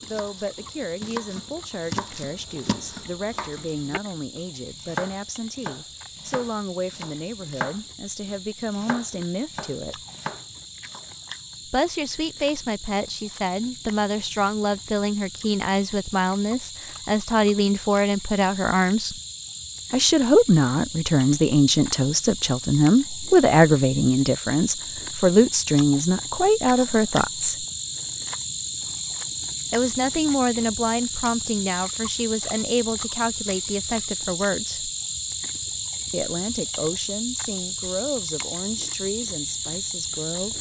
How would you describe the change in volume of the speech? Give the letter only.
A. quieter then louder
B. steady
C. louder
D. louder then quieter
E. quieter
D.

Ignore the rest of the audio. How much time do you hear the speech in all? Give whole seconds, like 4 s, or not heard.
35 s.